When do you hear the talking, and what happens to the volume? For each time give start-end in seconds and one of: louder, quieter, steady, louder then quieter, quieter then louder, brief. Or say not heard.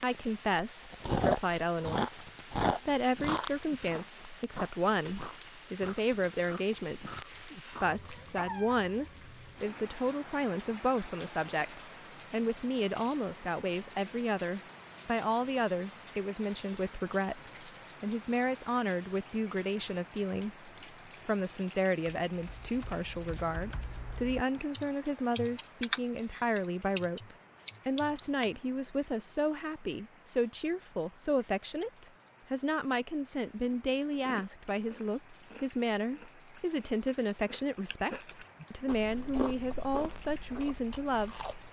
0.0-41.5 steady.